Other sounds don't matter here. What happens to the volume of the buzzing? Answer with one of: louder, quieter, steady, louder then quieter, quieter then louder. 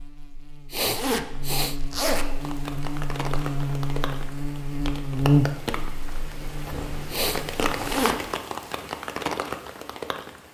louder then quieter.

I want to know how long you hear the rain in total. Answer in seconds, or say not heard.
8 s.